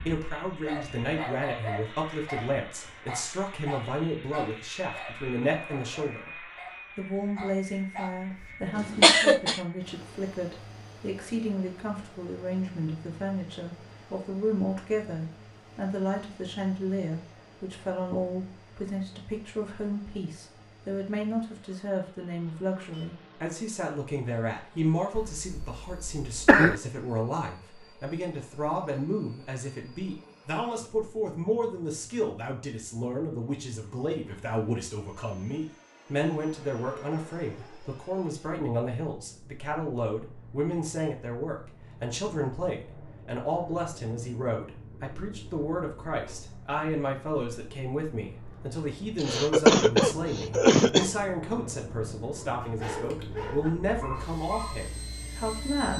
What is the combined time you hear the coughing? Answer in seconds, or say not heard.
4 s.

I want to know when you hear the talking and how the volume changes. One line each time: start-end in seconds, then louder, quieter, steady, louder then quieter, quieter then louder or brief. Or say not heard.
0.0-55.9 steady.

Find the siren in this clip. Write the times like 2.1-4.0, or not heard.
not heard.